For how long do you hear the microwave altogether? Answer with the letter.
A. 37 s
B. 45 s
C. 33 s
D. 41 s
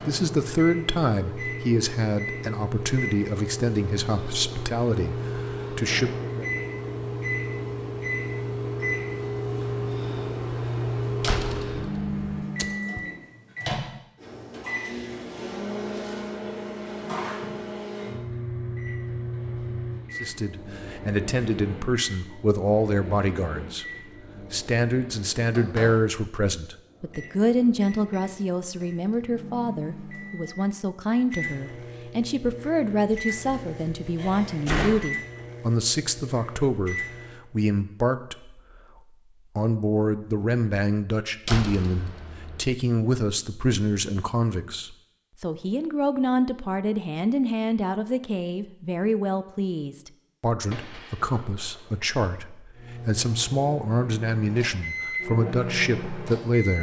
D.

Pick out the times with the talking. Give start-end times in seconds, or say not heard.
0.0-6.5, 20.2-38.6, 39.5-56.7.